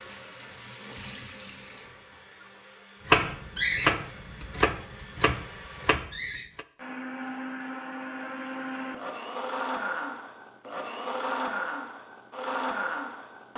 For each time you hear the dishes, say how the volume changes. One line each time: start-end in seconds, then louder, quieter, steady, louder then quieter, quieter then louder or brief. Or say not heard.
not heard.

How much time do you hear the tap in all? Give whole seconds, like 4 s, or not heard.
3 s.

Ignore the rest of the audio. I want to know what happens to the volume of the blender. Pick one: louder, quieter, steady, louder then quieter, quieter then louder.
louder.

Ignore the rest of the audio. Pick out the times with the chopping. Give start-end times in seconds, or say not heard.
3.0-6.7.